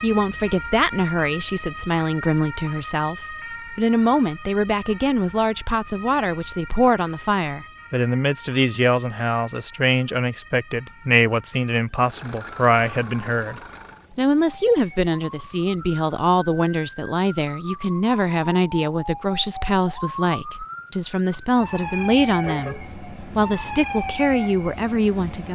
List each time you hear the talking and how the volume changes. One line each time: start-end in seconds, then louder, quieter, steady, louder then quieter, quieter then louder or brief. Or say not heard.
0.0-25.5 steady.